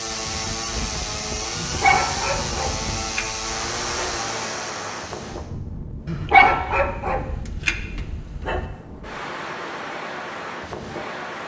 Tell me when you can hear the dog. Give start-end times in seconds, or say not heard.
1.6-4.2, 6.0-8.7.